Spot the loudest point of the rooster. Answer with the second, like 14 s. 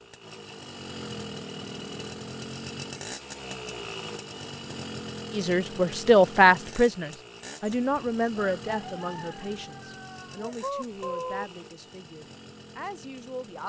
11 s.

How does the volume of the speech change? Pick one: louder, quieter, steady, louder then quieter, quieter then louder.
quieter.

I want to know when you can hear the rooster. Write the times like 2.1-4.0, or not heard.
7.7-11.4.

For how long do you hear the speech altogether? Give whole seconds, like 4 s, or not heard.
8 s.